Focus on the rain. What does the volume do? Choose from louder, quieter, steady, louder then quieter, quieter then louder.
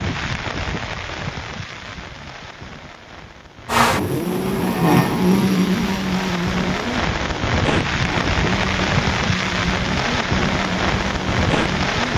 quieter then louder.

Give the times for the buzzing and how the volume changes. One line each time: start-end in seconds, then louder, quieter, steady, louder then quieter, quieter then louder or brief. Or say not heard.
3.7-12.1 quieter.